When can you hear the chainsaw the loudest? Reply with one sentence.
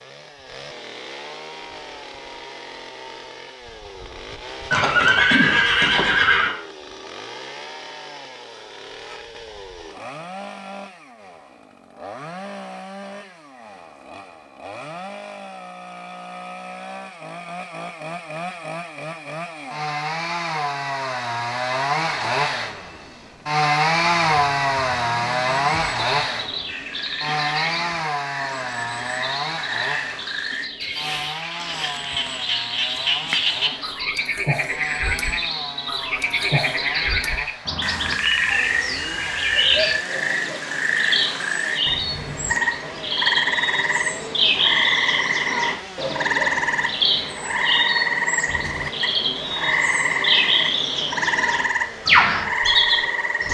The loudest moment of the chainsaw is at 24 seconds.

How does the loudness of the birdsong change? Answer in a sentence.
The loudness of the birdsong goes up.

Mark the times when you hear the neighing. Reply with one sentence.
You can hear the neighing from 4.7 to 6.5 s.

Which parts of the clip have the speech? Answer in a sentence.
You can't hear the speech here.